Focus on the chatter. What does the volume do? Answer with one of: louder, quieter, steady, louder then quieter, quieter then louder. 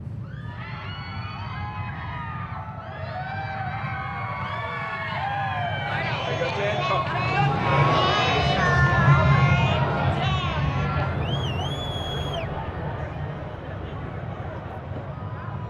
louder then quieter.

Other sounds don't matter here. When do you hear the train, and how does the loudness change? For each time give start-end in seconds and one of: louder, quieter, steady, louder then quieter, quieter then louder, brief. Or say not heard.
0.0-15.6 louder then quieter.